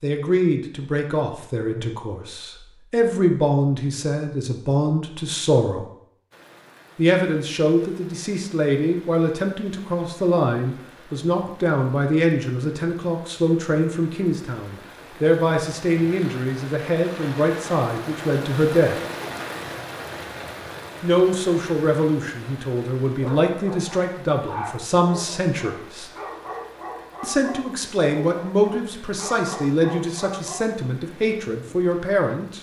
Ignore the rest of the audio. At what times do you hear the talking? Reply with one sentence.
You can hear the talking from 0.0 to 5.8 s, from 7.0 to 18.9 s, from 21.0 to 26.1 s and from 27.2 to 32.5 s.